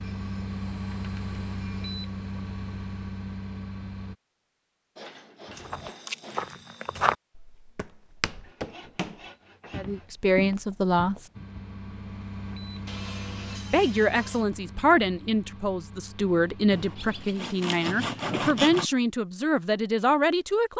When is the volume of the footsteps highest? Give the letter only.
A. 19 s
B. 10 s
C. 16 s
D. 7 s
D.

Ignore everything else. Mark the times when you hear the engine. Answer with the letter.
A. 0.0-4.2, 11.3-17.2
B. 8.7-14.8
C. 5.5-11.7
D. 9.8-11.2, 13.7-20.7
A.